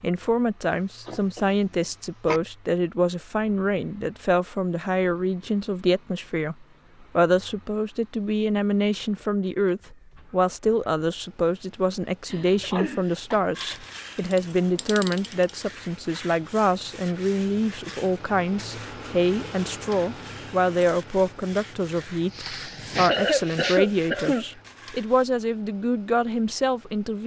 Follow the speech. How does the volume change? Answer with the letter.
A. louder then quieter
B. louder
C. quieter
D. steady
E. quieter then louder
D.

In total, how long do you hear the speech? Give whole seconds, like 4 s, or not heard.
27 s.